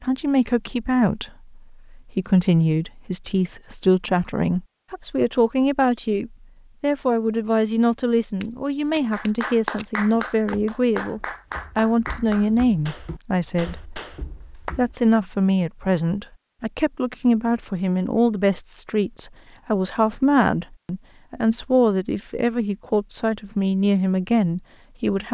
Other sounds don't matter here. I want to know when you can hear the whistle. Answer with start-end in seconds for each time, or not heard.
not heard.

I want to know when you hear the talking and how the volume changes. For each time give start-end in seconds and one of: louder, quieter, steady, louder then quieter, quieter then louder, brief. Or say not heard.
0.0-25.3 steady.